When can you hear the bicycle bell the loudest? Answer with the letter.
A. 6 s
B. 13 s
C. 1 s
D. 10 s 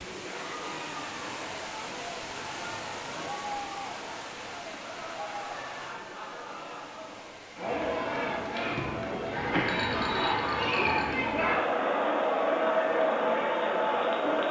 D.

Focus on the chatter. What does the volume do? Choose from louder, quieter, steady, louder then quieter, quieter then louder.
louder.